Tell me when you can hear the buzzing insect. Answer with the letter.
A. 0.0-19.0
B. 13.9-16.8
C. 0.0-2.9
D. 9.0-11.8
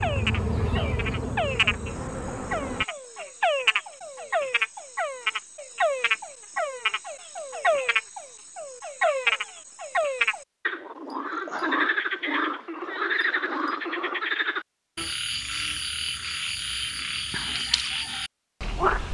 C.